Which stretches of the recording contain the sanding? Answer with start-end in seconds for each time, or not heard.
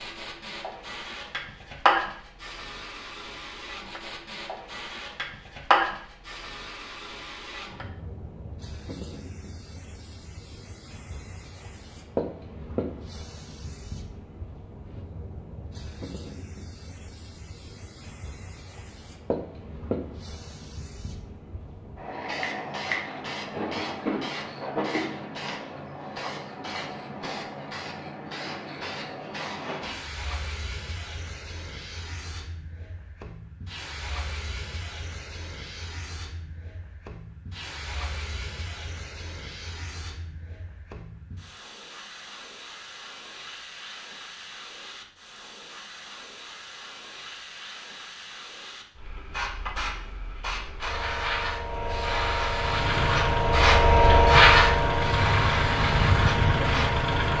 not heard.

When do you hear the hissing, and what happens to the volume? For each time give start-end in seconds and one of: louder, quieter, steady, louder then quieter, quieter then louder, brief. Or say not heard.
0.0-57.3 quieter then louder.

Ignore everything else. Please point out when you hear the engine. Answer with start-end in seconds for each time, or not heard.
52.5-57.3.